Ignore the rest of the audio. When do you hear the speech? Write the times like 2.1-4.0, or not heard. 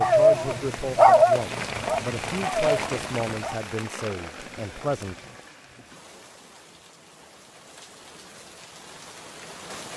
0.0-5.2.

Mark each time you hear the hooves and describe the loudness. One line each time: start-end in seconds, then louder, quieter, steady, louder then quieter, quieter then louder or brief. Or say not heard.
not heard.